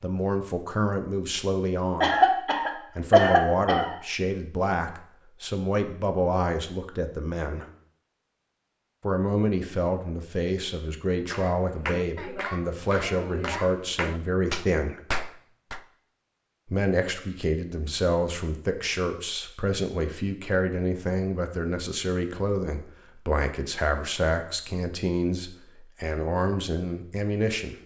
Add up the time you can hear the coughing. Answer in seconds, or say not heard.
2 s.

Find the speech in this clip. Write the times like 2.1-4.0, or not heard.
0.0-7.7, 9.0-15.0, 16.6-27.8.